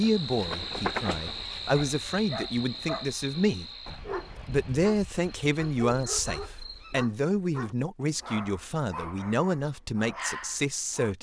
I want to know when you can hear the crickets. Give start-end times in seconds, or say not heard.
0.0-7.0.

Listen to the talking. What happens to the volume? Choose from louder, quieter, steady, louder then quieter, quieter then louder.
steady.